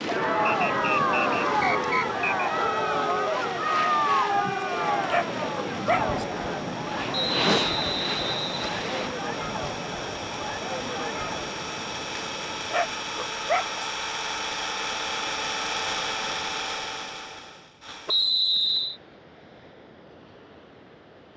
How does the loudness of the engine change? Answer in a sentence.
The loudness of the engine goes up.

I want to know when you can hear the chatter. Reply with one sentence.
You can hear the chatter from 0.1 to 11.6 s.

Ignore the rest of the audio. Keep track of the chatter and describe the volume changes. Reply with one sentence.
The volume of the chatter goes down.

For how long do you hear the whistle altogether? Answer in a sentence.
The whistle can be heard for 5 seconds in total.